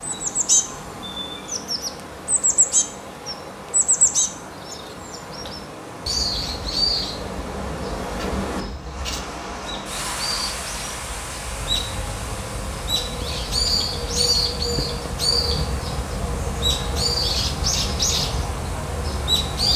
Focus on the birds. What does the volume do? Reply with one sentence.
The loudness of the birds goes down, then up.